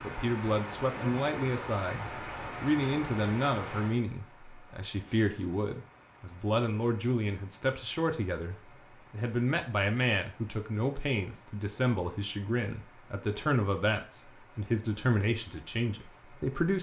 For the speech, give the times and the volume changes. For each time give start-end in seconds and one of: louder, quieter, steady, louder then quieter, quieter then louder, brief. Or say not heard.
0.0-16.7 steady.